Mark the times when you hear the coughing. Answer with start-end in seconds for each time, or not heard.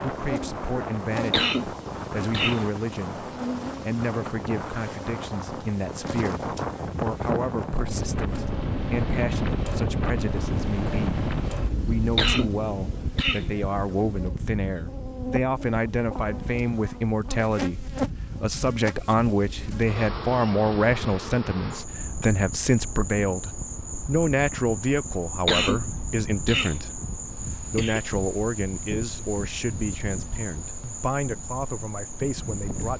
1.3-2.6, 12.2-13.4, 25.4-26.8, 27.6-28.0.